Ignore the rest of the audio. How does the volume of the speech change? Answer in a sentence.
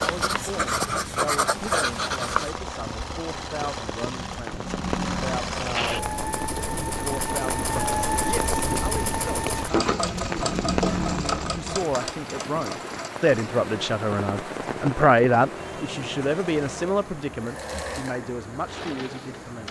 The loudness of the speech goes up, then down.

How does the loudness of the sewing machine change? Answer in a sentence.
The volume of the sewing machine goes up, then down.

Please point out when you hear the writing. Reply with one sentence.
You can hear the writing from 0.0 to 2.5 s.